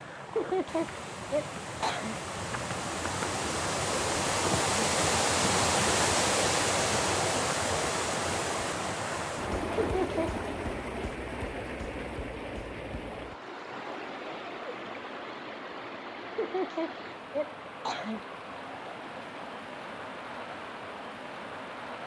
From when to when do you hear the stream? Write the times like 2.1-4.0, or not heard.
0.0-22.0.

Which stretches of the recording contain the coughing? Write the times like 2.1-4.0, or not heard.
0.3-2.1, 9.8-10.3, 16.4-18.2.